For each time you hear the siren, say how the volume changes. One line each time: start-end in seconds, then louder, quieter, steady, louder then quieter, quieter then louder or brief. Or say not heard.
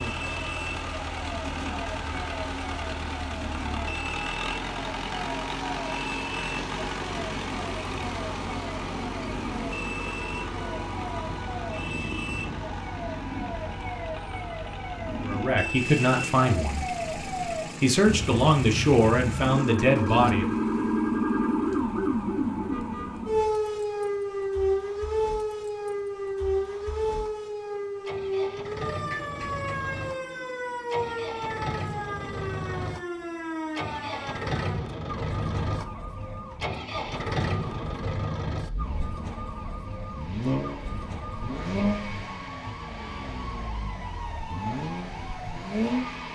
0.0-46.3 louder then quieter.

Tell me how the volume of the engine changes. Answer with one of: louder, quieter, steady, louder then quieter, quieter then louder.
quieter then louder.